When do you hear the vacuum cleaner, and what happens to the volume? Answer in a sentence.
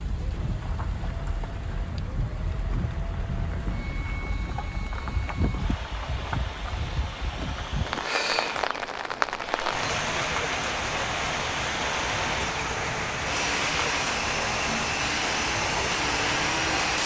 The vacuum cleaner can be heard from 0.1 to 17.0 s, getting louder.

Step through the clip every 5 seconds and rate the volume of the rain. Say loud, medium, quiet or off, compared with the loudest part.
medium, loud, loud, loud.